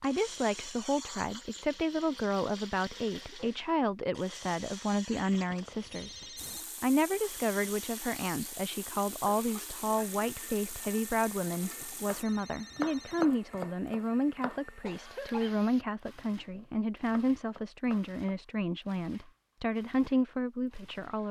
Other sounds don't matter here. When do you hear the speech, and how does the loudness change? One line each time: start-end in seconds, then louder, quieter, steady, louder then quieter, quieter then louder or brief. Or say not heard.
0.0-21.2 steady.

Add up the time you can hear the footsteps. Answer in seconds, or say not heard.
not heard.